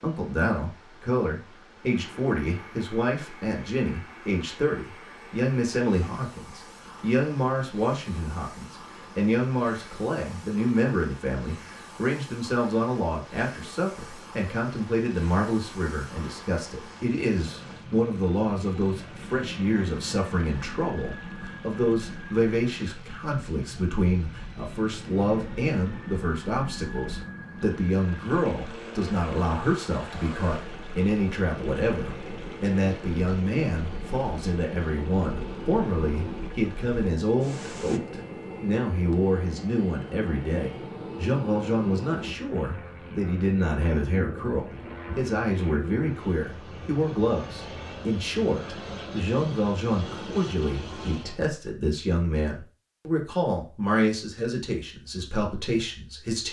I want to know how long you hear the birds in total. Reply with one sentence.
The birds can't be heard in this clip.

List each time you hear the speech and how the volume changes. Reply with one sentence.
You can hear the speech from 0.0 to 56.4 s, at a steady volume.